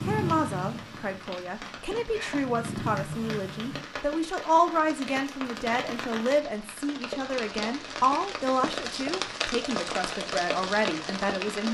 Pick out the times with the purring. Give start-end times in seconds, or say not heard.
0.0-3.8.